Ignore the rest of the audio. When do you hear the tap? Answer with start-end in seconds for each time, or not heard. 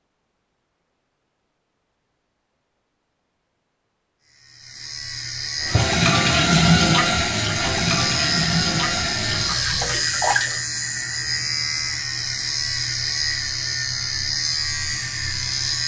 5.6-10.6.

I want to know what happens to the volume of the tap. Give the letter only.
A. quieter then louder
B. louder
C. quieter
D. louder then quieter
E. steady
C.